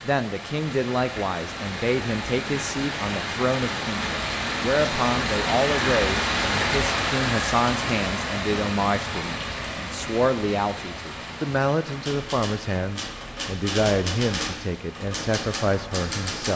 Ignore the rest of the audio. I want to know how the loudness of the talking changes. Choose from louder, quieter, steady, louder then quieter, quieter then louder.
steady.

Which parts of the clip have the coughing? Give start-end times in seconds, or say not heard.
not heard.